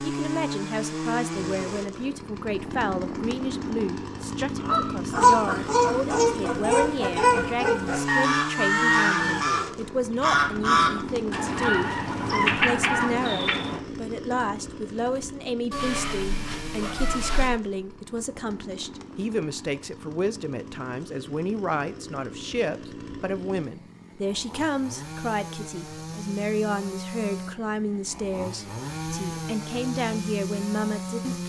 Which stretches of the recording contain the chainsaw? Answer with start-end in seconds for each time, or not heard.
0.0-31.4.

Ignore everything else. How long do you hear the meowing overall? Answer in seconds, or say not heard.
2 s.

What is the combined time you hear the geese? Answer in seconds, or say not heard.
9 s.